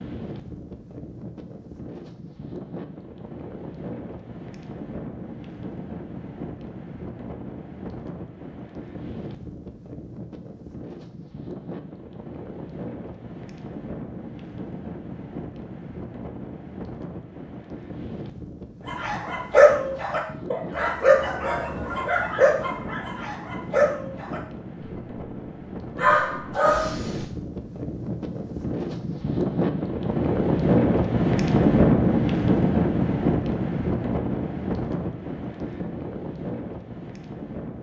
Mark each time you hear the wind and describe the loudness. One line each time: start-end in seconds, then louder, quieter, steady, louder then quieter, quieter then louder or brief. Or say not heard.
0.0-37.7 louder.